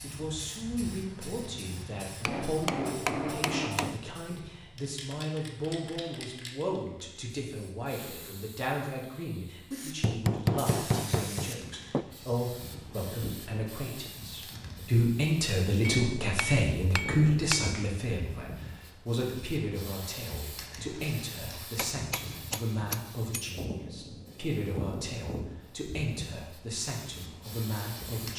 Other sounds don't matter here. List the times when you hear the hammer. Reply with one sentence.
You can hear the hammer from 2.2 to 4.0 s, from 10.0 to 12.1 s, from 15.8 to 17.8 s and from 21.6 to 23.5 s.